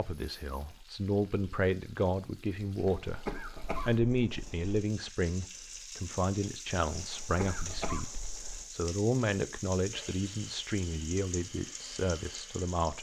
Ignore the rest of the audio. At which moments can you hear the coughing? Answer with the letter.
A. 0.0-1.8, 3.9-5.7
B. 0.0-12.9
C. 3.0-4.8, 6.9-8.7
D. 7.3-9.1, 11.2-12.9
C.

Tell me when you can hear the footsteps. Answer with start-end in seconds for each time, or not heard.
not heard.